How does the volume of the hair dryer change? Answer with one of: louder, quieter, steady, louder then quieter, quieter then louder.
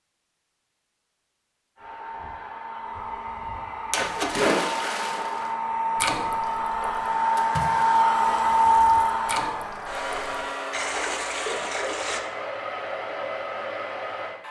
louder then quieter.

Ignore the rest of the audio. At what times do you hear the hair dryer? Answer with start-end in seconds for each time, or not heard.
1.8-14.4.